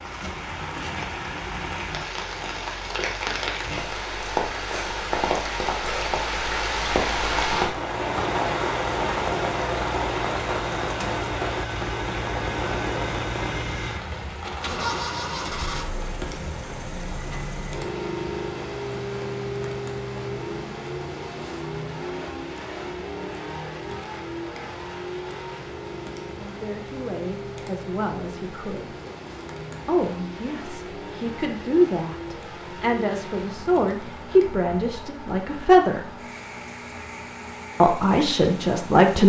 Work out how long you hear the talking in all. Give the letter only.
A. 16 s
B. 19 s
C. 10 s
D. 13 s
C.